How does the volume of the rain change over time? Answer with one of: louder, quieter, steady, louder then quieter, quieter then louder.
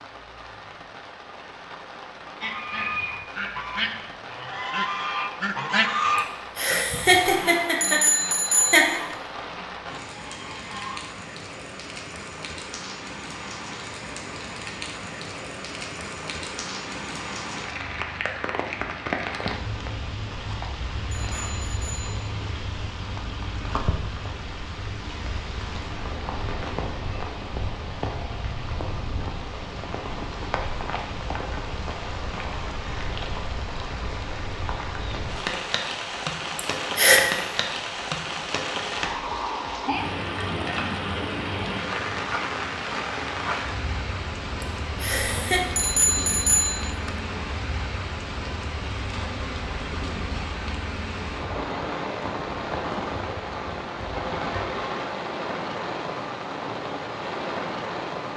louder.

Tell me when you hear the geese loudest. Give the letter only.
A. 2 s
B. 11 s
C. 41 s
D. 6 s
D.